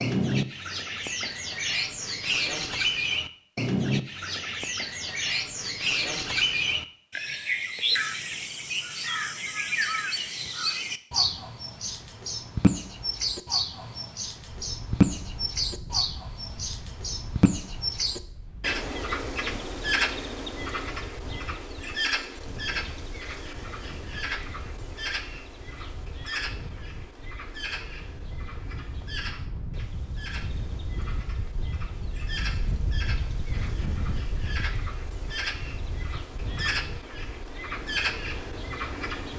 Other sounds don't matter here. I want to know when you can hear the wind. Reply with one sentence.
The wind can be heard from 14.4 to 39.3 s.